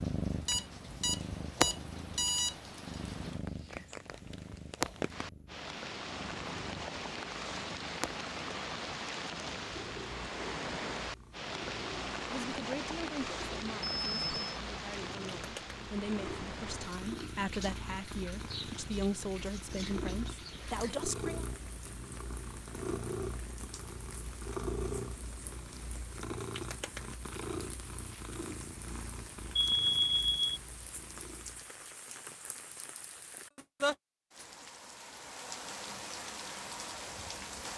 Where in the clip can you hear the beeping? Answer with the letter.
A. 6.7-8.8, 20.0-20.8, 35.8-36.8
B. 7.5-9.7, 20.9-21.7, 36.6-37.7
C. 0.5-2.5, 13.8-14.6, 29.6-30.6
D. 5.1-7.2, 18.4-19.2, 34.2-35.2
C.